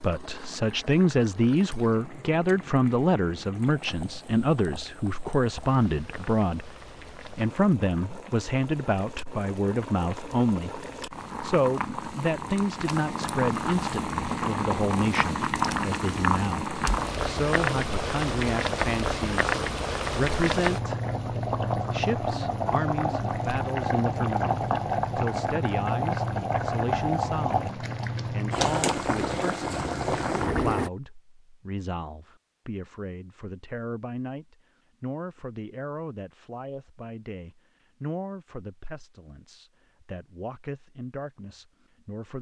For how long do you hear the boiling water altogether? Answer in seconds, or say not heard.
31 s.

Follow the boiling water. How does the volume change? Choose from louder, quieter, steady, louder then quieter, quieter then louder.
louder.